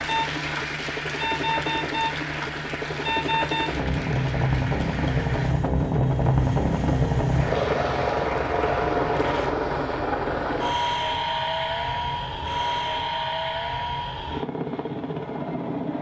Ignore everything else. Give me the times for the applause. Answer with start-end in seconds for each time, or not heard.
0.0-5.5, 7.2-9.6.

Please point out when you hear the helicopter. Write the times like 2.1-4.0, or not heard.
0.0-15.9.